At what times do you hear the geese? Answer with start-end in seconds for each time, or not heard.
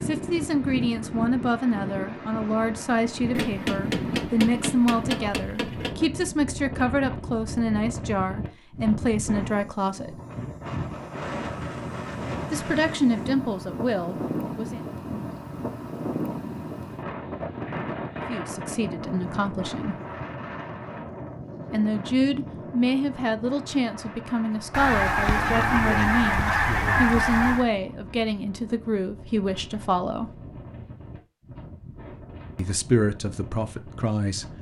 24.7-27.7.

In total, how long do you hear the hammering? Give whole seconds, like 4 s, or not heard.
3 s.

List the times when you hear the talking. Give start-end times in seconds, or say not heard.
0.0-10.2, 12.5-14.8, 18.2-19.9, 21.7-30.4, 32.5-34.5.